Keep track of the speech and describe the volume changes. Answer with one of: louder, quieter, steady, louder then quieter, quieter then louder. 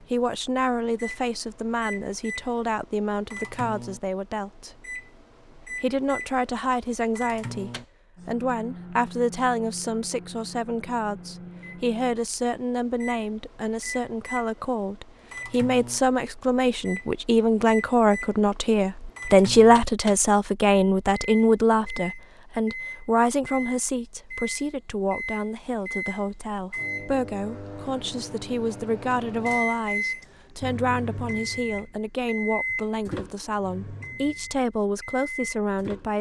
louder then quieter.